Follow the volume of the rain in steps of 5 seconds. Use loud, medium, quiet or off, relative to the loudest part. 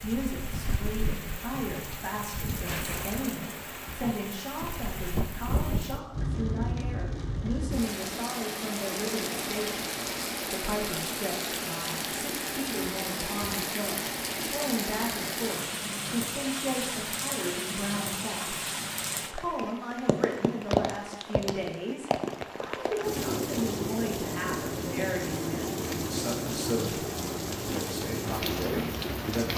medium, loud, loud, loud, loud, loud.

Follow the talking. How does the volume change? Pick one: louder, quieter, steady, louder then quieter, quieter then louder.
steady.